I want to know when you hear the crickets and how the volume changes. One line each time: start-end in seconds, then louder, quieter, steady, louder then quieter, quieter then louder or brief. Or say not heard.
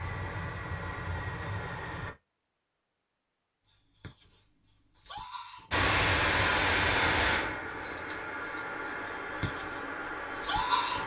3.6-11.0 louder then quieter.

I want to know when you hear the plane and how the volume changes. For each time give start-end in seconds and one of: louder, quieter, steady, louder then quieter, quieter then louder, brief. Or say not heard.
0.0-2.1 brief
5.7-11.0 quieter.